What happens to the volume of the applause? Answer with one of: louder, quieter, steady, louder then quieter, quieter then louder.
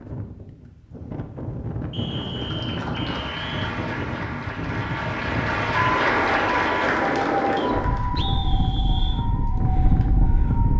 louder then quieter.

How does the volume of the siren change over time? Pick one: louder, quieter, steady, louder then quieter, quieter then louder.
quieter.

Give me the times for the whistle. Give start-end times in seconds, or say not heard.
1.9-3.7, 7.5-9.2.